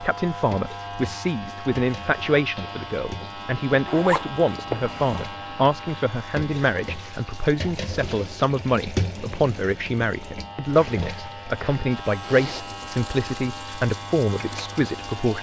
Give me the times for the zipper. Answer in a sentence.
You can hear the zipper from 3.9 to 5.3 s and from 12.2 to 12.7 s.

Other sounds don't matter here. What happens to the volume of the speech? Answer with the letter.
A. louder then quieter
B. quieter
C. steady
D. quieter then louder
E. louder
C.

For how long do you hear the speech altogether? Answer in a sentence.
The speech can be heard for 15 seconds in total.